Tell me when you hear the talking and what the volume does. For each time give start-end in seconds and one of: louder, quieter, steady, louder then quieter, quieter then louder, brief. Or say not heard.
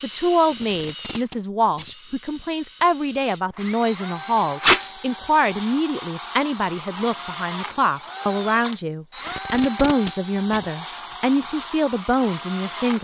0.0-12.9 steady.